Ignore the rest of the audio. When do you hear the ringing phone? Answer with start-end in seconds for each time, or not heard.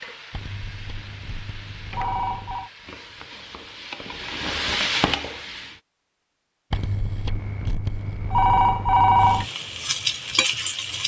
0.3-2.7, 6.7-9.4.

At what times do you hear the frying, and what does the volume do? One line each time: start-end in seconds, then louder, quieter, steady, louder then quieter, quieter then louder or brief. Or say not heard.
0.0-5.8 louder
9.2-11.0 brief.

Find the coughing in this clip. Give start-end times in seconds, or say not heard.
not heard.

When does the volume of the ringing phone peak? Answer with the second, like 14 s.
9 s.